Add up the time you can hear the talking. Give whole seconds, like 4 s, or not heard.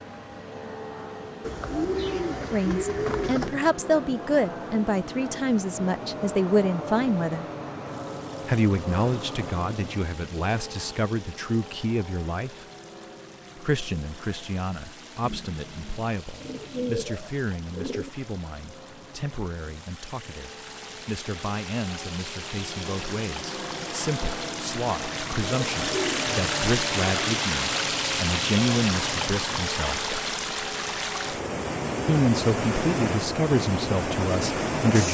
29 s.